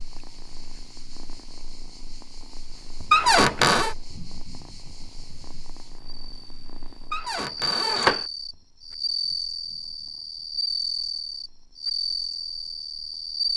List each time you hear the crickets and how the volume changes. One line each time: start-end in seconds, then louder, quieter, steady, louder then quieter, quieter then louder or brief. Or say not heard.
0.0-13.5 louder.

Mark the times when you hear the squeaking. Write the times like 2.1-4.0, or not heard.
3.1-4.0, 7.1-8.2.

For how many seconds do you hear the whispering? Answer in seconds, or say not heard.
not heard.